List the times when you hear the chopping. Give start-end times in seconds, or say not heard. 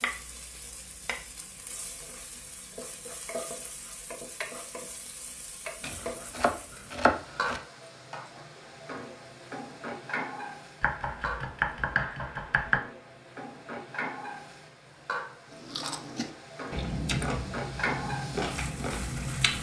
5.8-7.6, 10.8-12.8.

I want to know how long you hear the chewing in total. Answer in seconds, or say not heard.
4 s.